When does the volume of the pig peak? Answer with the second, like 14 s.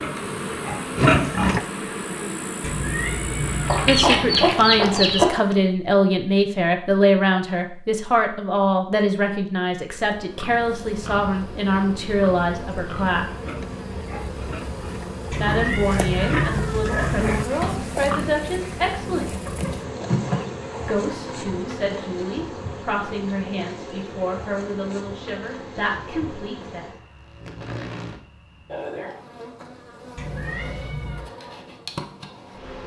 1 s.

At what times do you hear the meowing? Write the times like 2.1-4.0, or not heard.
2.6-4.1, 15.3-17.4, 30.1-31.2.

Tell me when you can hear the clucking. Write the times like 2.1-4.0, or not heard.
3.6-5.3, 19.4-21.7.